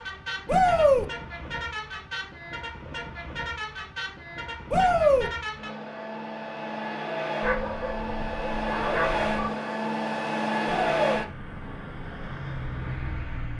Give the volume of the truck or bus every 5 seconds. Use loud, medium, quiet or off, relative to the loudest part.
medium, loud, loud.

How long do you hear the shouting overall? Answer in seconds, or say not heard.
2 s.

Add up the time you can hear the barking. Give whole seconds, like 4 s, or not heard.
2 s.